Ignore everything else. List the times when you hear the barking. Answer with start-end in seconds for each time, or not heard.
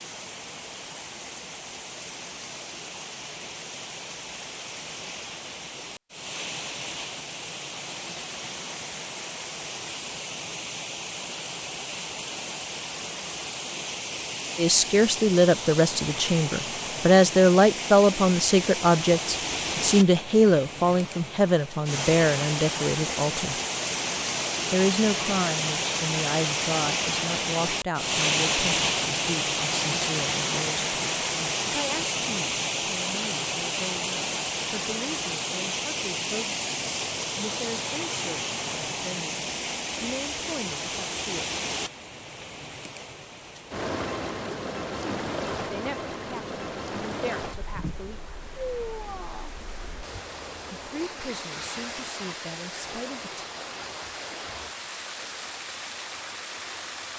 not heard.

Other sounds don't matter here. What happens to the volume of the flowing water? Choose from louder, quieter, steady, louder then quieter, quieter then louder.
louder then quieter.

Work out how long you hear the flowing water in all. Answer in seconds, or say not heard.
57 s.